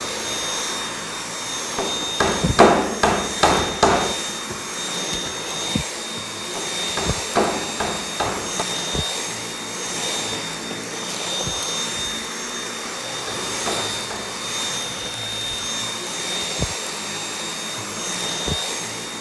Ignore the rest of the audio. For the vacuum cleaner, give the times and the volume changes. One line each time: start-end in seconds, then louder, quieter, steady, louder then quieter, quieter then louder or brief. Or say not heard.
0.0-19.1 steady.